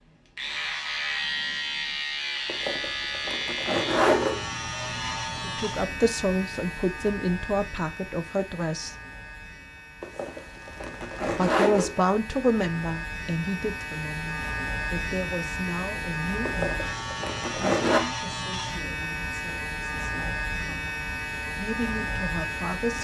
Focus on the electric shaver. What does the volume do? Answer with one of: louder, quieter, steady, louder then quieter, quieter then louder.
quieter then louder.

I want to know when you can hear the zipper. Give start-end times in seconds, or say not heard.
2.5-4.5, 10.0-12.0, 16.4-18.0.